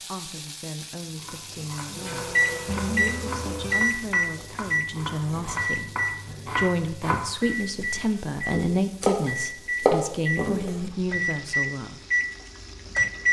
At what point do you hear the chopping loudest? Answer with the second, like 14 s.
10 s.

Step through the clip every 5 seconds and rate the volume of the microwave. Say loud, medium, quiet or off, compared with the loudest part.
loud, medium, loud.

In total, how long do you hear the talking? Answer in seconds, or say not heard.
12 s.